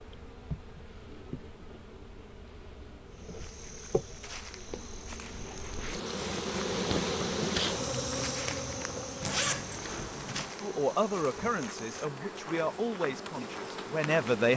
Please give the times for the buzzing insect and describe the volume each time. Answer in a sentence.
The buzzing insect can be heard from 0.0 to 14.5 s, getting louder then quieter.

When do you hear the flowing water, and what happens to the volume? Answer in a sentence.
The flowing water can't be heard in this clip.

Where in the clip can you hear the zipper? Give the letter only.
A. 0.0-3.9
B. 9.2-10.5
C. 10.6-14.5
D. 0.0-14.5
B.